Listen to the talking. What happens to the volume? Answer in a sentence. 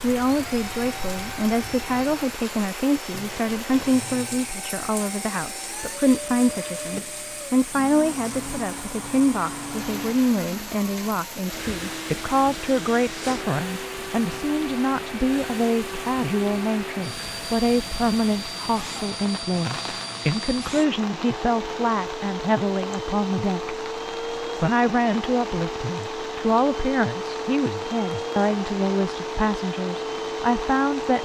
The volume of the talking stays about the same.